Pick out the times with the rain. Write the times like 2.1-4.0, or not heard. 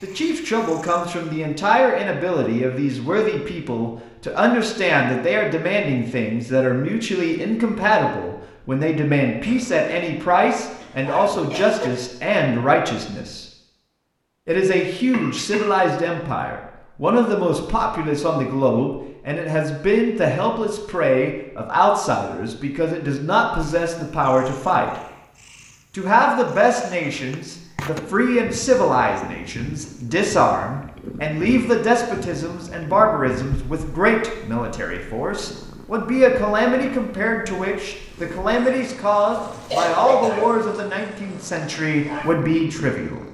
not heard.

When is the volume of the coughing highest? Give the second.
40 s.